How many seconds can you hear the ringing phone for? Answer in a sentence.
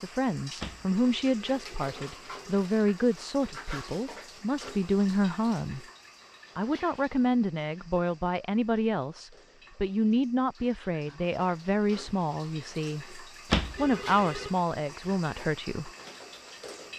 You can hear the ringing phone for 3 seconds altogether.